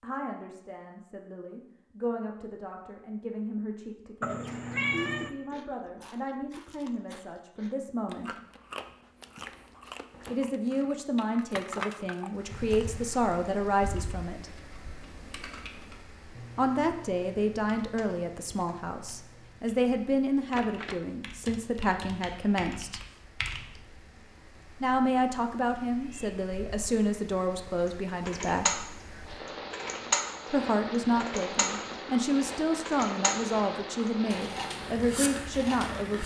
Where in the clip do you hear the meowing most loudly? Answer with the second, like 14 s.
5 s.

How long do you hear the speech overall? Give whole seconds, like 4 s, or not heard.
29 s.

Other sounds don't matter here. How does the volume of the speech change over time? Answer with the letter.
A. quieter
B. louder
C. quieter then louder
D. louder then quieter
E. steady
B.